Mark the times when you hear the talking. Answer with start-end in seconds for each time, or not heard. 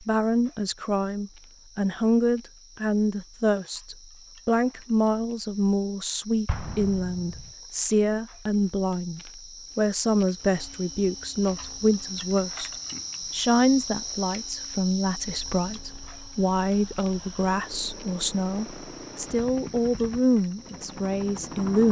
0.1-12.7, 13.3-21.8.